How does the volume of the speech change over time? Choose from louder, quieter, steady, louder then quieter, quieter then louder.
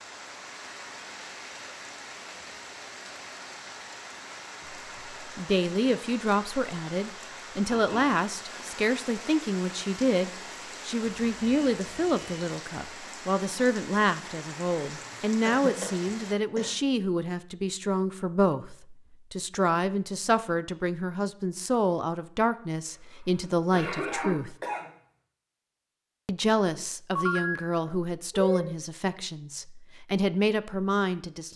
steady.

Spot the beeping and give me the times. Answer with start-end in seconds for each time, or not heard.
11.0-12.3, 27.1-28.6.